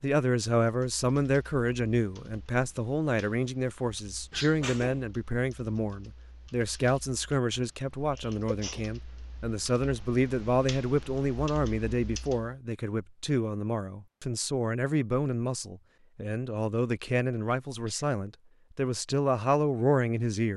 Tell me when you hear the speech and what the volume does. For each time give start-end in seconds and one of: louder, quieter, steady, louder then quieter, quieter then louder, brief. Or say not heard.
0.0-20.5 steady.